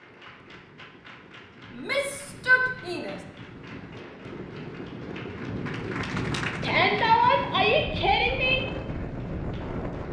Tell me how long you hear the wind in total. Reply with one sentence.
You can hear the wind for 10 seconds altogether.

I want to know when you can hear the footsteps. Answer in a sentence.
You can't hear the footsteps here.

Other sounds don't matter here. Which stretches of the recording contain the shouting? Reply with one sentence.
The shouting can be heard from 1.7 to 3.2 s and from 6.6 to 8.6 s.